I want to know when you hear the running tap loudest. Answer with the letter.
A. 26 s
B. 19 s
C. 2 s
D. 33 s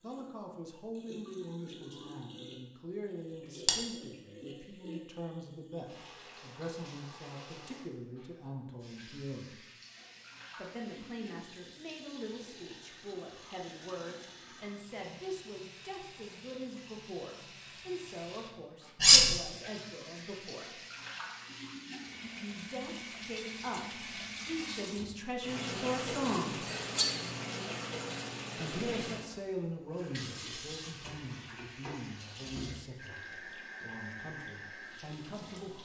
A.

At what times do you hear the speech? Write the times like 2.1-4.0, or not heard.
0.0-9.6, 10.6-20.8, 22.3-26.6, 28.6-35.8.